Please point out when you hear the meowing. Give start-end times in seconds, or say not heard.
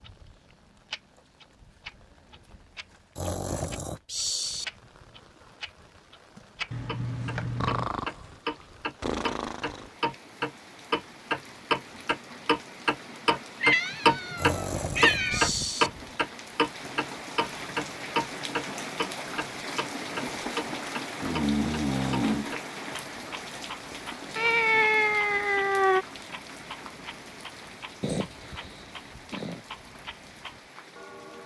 6.7-7.9, 13.6-15.5, 24.4-26.1.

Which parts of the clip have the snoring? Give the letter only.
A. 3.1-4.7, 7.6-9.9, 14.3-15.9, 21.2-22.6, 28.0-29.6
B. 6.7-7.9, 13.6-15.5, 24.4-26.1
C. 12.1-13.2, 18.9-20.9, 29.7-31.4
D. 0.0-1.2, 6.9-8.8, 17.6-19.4
A.